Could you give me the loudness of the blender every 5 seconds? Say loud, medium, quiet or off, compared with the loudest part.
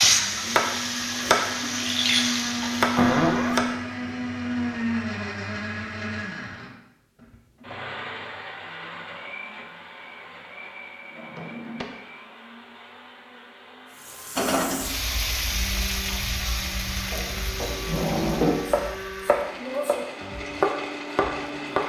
loud, medium, quiet, medium, medium.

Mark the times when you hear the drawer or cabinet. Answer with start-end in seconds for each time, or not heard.
3.0-3.6, 11.2-11.8, 17.1-18.6.